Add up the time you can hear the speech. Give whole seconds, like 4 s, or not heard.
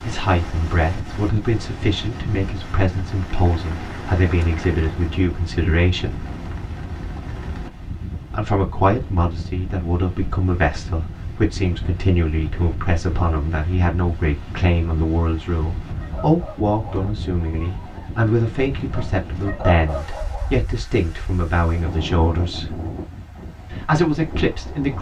22 s.